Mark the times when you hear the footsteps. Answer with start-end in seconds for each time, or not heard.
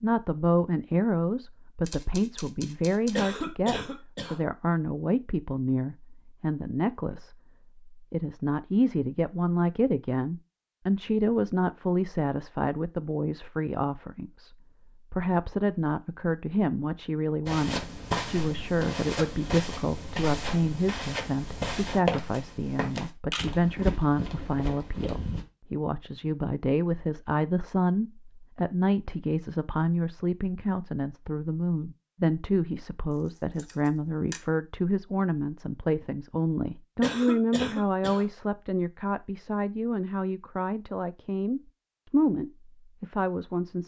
17.4-25.4.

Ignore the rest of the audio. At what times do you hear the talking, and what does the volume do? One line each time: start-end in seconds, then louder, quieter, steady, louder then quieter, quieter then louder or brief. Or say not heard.
0.0-43.8 steady.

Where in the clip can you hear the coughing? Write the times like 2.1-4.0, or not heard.
3.1-4.4, 37.0-38.2.